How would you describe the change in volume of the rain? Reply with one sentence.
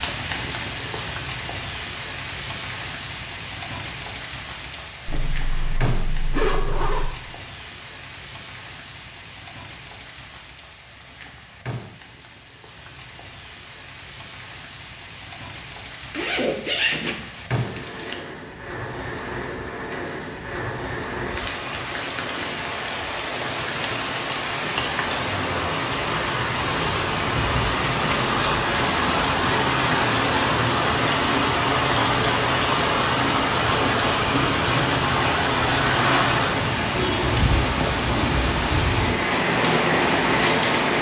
The loudness of the rain goes down, then up.